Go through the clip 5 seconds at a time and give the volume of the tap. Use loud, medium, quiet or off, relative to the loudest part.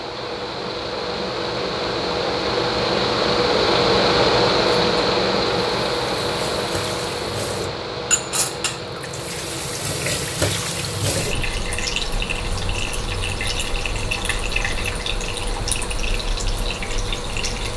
off, loud, loud, loud.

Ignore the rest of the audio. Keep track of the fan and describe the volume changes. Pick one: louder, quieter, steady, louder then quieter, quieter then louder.
quieter.